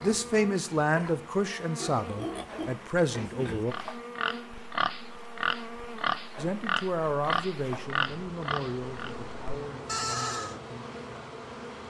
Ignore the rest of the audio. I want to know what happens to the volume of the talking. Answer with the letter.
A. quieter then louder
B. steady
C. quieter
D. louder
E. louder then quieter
C.